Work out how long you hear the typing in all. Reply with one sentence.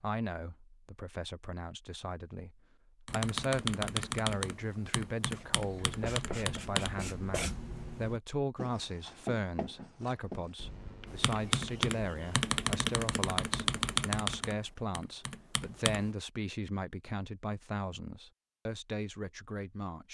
You can hear the typing for 9 seconds altogether.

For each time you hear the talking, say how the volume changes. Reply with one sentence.
You can hear the talking from 0.0 to 20.0 s, at a steady volume.